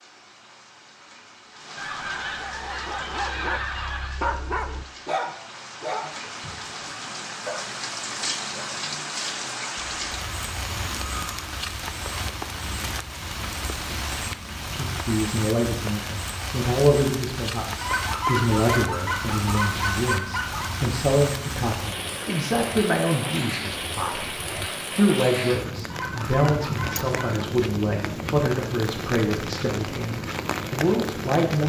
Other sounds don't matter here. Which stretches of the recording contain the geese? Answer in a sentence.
You can hear the geese from 1.8 to 4.2 s, from 9.8 to 11.6 s, from 17.8 to 20.7 s and from 25.9 to 27.4 s.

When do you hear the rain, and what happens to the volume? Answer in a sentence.
The rain can be heard from 0.0 to 31.6 s, getting louder.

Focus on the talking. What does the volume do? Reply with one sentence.
The volume of the talking stays about the same.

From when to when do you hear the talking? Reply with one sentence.
The talking can be heard from 14.7 to 31.6 s.